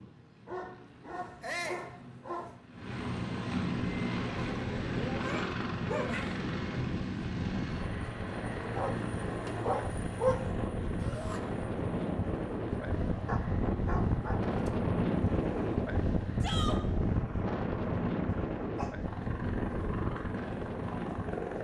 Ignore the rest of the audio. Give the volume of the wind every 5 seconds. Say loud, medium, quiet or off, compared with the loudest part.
off, medium, loud, loud, medium.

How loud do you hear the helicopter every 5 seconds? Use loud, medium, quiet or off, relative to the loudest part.
loud, loud, medium, medium, loud.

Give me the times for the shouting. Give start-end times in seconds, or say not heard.
1.4-1.9, 10.9-11.4, 16.4-16.8.